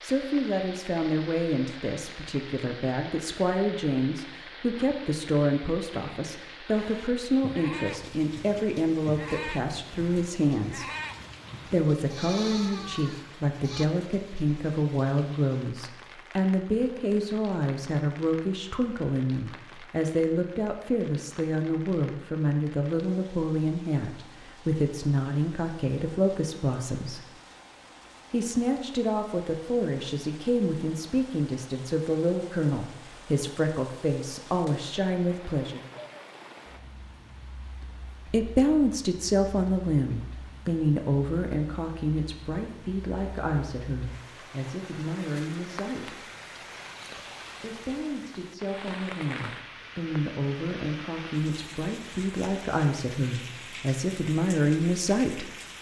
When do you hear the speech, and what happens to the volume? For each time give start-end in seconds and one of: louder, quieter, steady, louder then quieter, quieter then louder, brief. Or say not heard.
0.0-10.9 steady
11.7-27.3 steady
28.3-35.8 steady
38.2-46.2 quieter
47.6-55.5 louder.